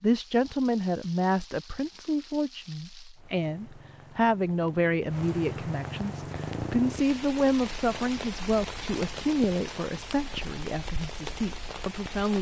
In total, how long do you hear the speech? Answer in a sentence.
The speech can be heard for 12 seconds in total.